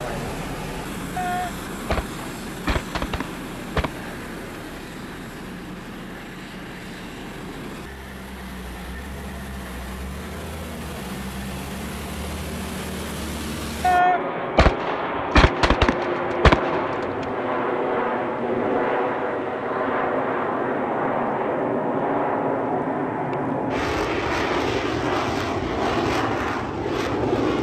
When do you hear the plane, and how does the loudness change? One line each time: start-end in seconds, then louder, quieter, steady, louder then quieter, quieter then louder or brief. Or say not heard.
0.0-27.5 louder.